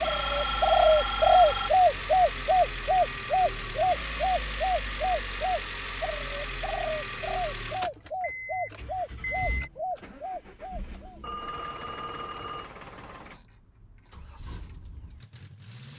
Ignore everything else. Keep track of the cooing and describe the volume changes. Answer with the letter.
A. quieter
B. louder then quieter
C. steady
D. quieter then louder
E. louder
A.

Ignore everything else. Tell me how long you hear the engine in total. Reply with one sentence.
The engine can be heard for 16 seconds in total.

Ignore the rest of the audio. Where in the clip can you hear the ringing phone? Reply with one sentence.
You can hear the ringing phone from 0.0 to 1.7 s and from 11.2 to 12.7 s.